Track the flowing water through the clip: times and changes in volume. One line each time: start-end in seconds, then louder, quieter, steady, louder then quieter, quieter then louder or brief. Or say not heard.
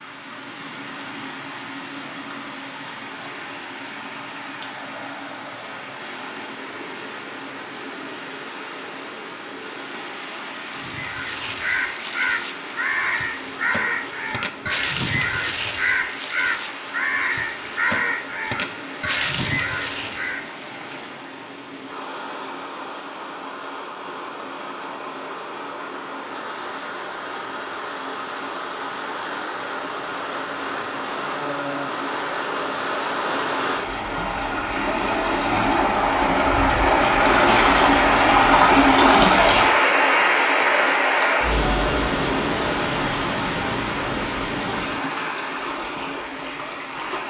0.0-47.2 louder.